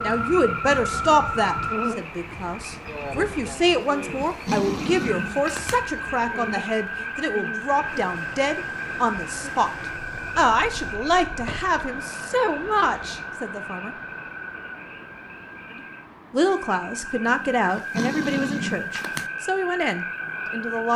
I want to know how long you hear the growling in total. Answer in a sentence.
The growling can be heard for 4 seconds in total.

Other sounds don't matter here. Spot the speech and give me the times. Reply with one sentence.
The speech can be heard from 0.0 to 13.9 s and from 15.8 to 20.9 s.